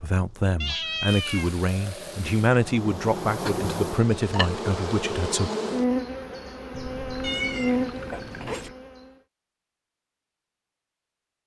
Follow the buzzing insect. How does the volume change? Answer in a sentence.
The volume of the buzzing insect goes up.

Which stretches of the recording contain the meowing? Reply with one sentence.
The meowing can be heard from 0.6 to 1.6 s and from 7.2 to 8.7 s.